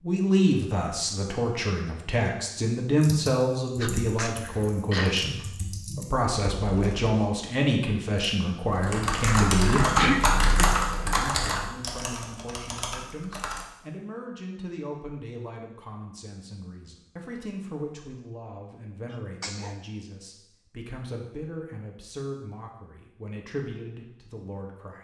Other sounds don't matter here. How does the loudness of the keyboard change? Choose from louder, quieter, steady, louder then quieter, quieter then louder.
louder then quieter.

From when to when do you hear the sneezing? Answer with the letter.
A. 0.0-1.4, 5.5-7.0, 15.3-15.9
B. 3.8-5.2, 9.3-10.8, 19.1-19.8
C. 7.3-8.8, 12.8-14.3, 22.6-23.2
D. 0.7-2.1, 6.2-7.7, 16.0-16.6
B.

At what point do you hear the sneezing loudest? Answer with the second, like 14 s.
10 s.